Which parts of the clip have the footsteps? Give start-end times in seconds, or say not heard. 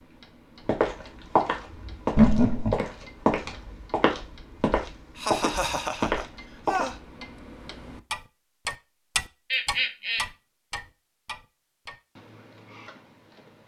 0.7-7.0.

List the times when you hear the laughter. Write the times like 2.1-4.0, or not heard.
2.1-2.8, 5.2-7.0, 9.5-10.2.